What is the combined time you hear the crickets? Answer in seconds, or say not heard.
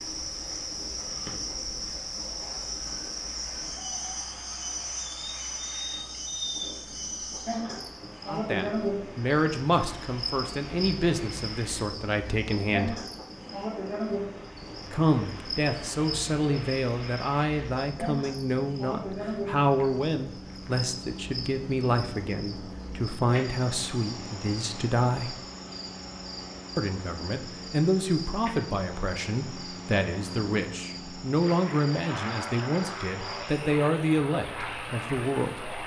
36 s.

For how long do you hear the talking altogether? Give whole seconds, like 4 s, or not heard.
24 s.